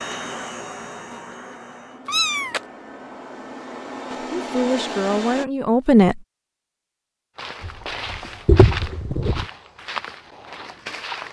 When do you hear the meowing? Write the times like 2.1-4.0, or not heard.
2.0-2.6, 7.6-9.4.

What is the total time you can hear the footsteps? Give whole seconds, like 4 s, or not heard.
4 s.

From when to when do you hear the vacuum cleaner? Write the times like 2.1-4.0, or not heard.
0.0-5.5.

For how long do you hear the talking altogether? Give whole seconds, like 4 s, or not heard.
2 s.